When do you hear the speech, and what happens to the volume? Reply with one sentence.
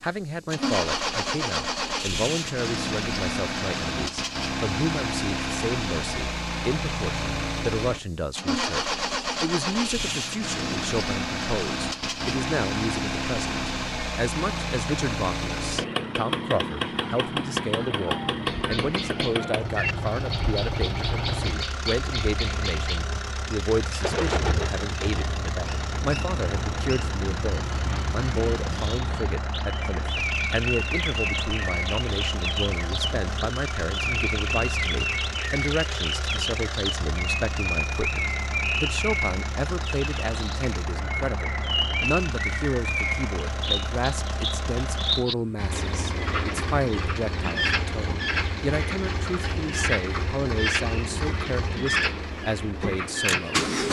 The speech can be heard from 0.0 to 53.6 s, at a steady volume.